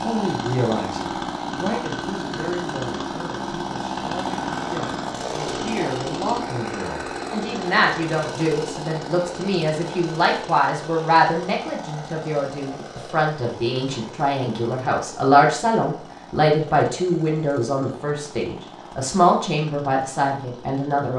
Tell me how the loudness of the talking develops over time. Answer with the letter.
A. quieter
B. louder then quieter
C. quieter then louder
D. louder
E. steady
D.